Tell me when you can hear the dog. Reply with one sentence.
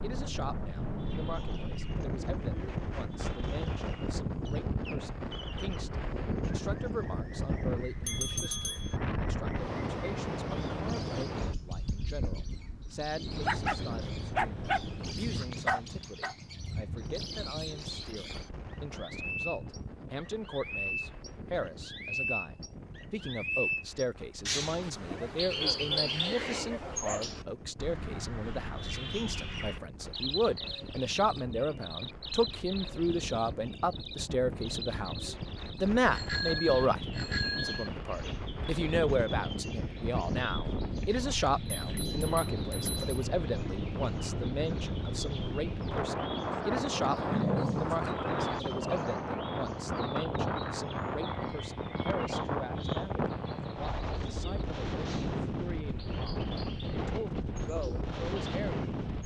The dog can be heard from 13.4 to 16.4 s, from 25.1 to 27.3 s and from 47.1 to 49.0 s.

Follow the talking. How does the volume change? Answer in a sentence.
The volume of the talking goes up, then down.